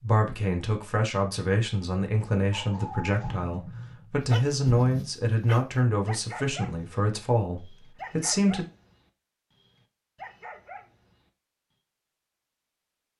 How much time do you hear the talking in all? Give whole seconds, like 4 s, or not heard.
9 s.